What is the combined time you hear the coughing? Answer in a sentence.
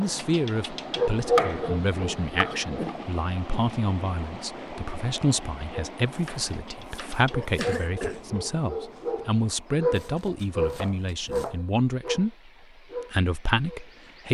The coughing can be heard for 2 seconds in total.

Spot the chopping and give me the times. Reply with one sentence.
The chopping can be heard from 1.1 to 2.5 s, from 6.2 to 7.8 s and from 9.9 to 11.6 s.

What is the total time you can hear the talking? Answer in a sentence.
You can hear the talking for 14 seconds altogether.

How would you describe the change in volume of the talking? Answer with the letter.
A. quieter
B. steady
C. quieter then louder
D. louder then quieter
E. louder
B.